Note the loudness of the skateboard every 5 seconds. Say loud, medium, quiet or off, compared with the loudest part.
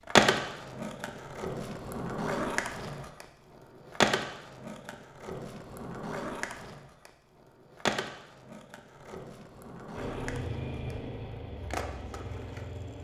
loud, medium, quiet.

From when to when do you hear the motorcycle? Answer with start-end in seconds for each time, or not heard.
9.9-12.9.